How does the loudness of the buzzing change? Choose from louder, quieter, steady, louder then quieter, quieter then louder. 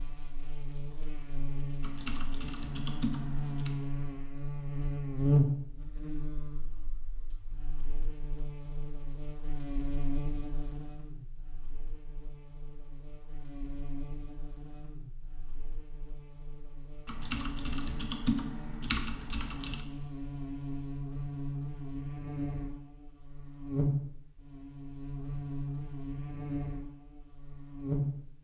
quieter then louder.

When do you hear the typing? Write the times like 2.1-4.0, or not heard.
1.8-3.7, 17.1-19.8.